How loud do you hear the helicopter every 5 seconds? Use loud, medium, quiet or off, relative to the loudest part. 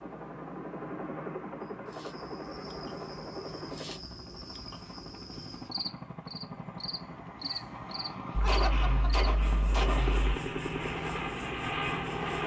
medium, medium, loud.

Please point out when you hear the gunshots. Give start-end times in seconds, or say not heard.
8.3-10.3.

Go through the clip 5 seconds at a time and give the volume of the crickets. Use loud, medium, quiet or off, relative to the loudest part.
medium, loud, loud.